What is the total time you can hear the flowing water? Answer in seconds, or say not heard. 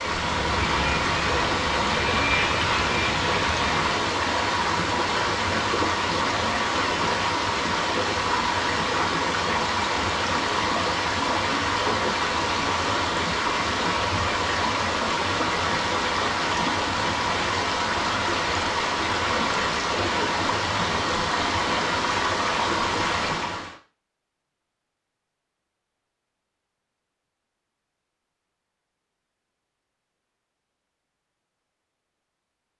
24 s.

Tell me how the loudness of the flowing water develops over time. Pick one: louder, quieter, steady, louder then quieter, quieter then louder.
steady.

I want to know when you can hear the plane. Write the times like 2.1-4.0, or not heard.
0.0-4.0.